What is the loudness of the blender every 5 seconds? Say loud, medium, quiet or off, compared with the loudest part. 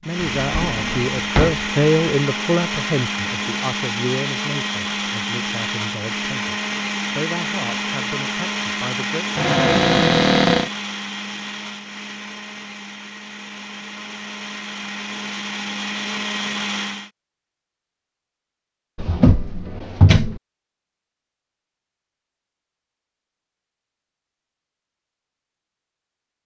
loud, loud, medium, loud, off, off.